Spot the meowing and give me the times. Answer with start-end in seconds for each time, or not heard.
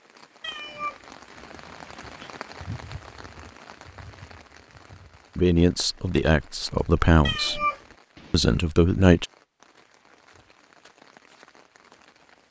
0.4-2.4, 7.2-8.3.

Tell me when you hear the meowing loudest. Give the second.
8 s.